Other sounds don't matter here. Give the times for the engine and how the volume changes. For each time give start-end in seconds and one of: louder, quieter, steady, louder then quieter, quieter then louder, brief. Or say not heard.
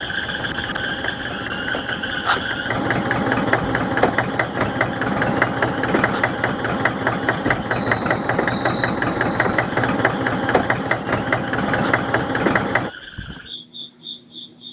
0.0-12.9 louder.